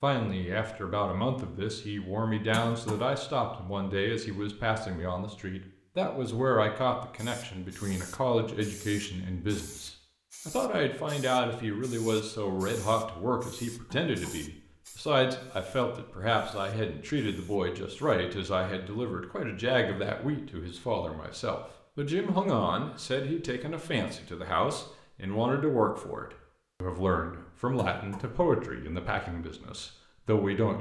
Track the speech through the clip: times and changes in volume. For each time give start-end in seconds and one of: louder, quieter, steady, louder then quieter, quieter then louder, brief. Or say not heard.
0.0-30.7 steady.